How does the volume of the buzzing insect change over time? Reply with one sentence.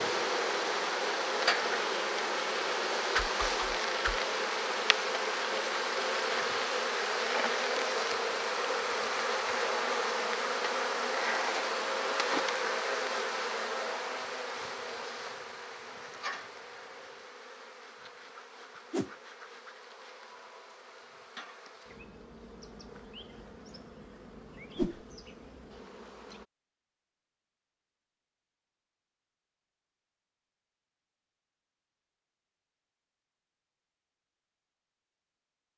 The volume of the buzzing insect goes down.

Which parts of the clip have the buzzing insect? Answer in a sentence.
You can hear the buzzing insect from 0.0 to 26.4 s.